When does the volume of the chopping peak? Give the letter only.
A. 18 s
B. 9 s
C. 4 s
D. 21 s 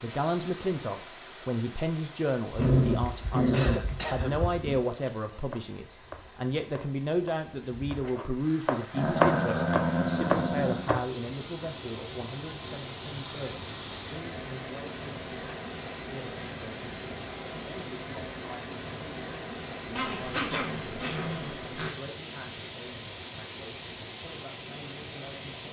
B.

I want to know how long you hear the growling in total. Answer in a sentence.
The growling can be heard for 6 seconds in total.